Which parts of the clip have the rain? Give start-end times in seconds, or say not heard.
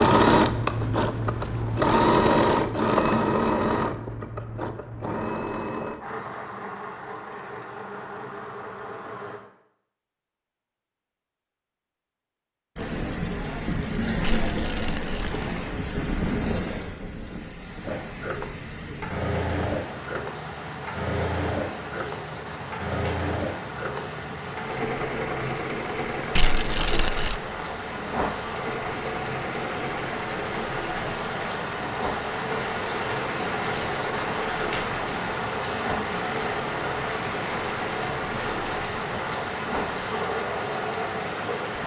12.8-41.8.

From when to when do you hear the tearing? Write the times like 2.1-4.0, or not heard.
14.2-15.7, 26.4-27.4.